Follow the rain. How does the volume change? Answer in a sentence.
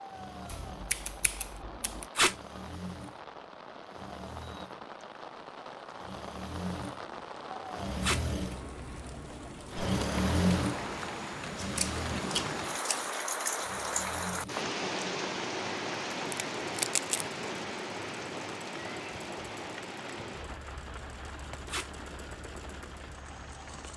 The volume of the rain goes up, then down.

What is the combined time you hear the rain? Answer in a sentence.
You can hear the rain for 24 seconds altogether.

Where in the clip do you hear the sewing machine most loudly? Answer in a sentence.
The volume of the sewing machine peaks at 10 seconds.